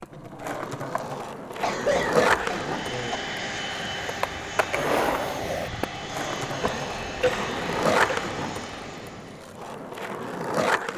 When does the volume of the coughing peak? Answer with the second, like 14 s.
2 s.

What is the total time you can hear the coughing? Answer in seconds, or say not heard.
3 s.